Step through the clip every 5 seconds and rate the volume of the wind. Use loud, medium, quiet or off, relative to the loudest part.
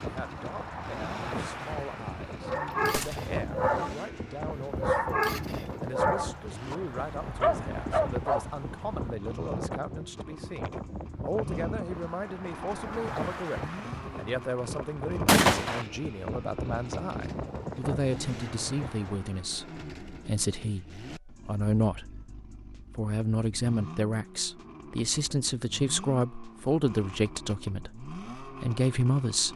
loud, loud, loud, loud, off, off.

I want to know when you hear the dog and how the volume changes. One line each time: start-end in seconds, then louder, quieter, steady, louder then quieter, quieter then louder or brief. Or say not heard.
2.4-4.0 brief
4.8-8.8 quieter then louder.